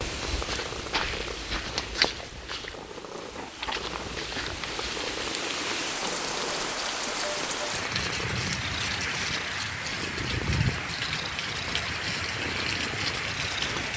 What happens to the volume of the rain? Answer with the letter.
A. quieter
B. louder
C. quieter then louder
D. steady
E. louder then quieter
B.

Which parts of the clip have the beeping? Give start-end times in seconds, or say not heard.
not heard.